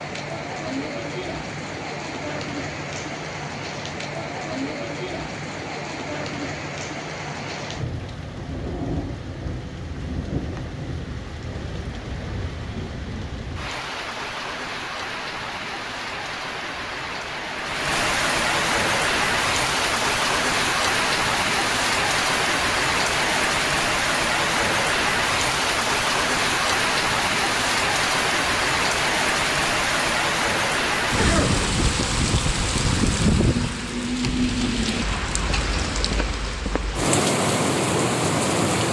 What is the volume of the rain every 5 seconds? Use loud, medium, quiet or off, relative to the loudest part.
medium, medium, medium, loud, loud, loud, loud, loud.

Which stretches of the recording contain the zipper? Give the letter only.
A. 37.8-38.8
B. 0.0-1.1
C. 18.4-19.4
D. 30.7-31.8
D.